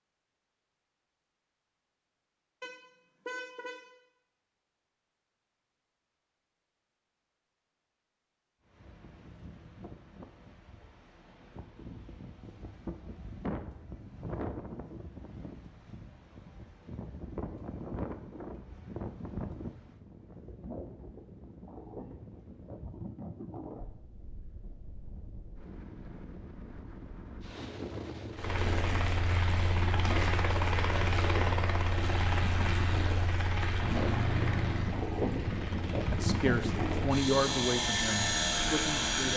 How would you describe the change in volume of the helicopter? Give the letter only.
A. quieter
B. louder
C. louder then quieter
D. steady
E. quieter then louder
E.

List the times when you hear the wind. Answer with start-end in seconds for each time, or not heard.
8.7-39.3.